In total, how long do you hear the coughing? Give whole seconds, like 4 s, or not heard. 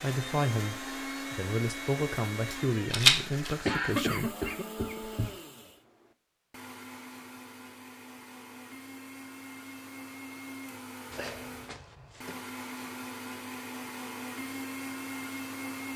3 s.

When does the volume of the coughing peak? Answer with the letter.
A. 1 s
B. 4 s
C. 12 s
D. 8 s
B.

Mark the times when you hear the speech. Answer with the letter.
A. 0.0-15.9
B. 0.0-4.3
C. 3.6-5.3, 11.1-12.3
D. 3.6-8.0
B.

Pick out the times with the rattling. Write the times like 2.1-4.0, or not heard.
2.9-3.5.